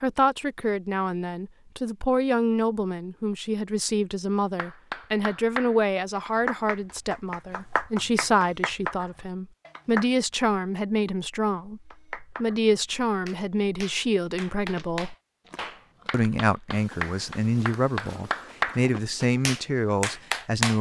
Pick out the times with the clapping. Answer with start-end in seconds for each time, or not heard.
4.5-10.1, 11.9-18.9, 19.4-20.7.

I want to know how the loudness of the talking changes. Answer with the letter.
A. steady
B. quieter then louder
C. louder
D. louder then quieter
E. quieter
A.